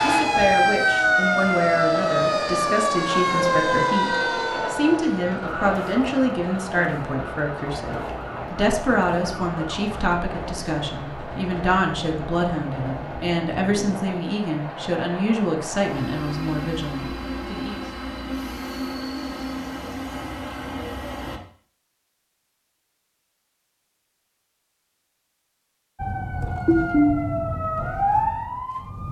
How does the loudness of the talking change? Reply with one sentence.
The volume of the talking stays about the same.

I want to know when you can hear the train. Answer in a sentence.
You can hear the train from 0.0 to 21.4 s.